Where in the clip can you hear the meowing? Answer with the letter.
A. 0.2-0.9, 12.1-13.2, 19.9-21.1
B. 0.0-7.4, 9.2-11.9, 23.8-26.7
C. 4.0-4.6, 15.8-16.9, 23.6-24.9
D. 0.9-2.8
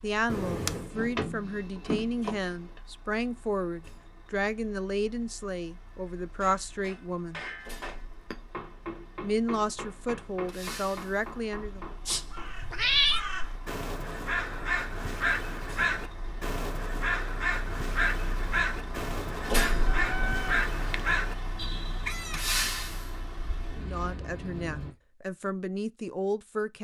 A.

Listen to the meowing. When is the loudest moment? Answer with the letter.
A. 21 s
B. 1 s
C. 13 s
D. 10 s
C.